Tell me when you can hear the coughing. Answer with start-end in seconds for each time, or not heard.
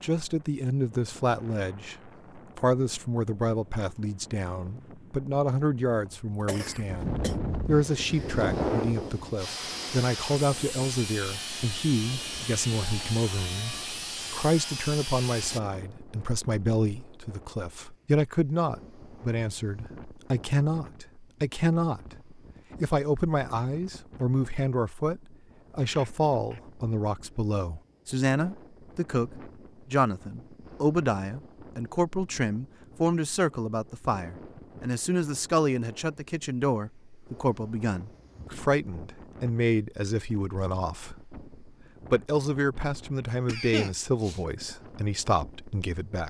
6.0-7.3, 25.9-26.6, 43.5-44.4.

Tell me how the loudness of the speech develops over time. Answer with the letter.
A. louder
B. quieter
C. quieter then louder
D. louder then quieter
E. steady
E.